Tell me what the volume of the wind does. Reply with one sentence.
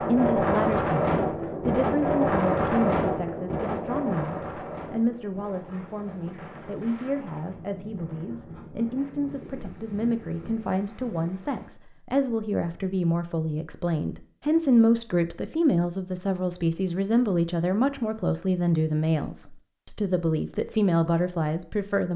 The loudness of the wind goes down.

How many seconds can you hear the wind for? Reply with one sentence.
You can hear the wind for 12 seconds altogether.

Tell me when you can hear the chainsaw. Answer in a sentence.
The chainsaw can't be heard in this clip.